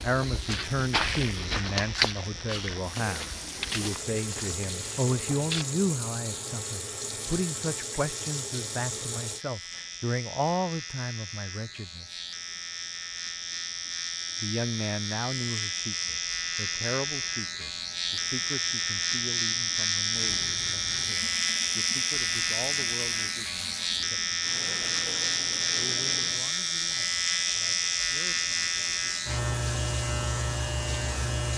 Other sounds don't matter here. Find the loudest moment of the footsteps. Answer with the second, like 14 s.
2 s.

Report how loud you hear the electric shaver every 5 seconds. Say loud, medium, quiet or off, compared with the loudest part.
quiet, quiet, medium, loud, loud, loud, loud.